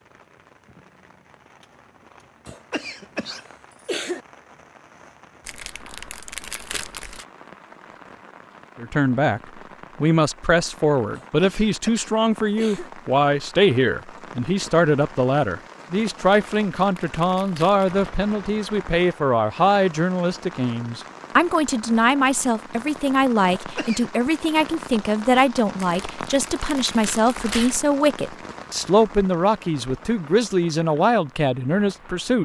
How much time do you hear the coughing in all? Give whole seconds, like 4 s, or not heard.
4 s.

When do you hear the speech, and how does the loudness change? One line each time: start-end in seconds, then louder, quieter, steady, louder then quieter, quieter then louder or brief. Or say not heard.
8.8-9.4 brief
10.0-32.4 steady.